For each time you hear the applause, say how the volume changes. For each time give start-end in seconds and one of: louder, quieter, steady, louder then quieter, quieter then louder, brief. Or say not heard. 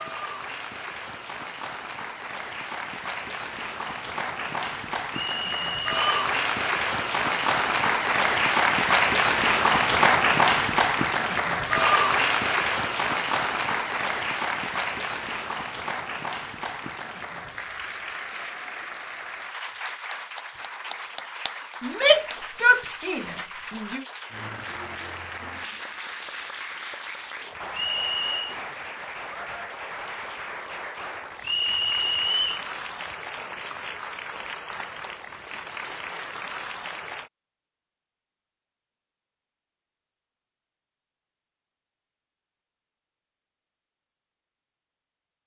0.0-37.3 louder then quieter.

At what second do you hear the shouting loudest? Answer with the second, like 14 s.
22 s.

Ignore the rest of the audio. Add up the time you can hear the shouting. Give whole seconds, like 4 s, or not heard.
2 s.